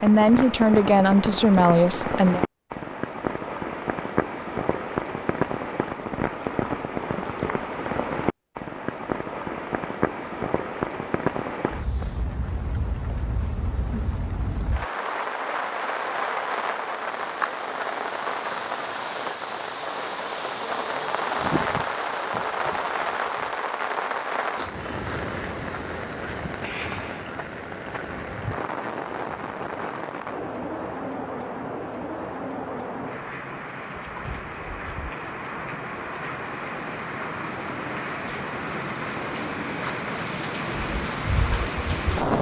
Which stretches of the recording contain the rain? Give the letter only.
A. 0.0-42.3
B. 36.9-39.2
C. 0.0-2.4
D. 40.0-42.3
A.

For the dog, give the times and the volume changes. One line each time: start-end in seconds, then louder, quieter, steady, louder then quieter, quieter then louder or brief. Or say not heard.
not heard.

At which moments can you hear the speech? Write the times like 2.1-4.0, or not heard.
0.0-2.4.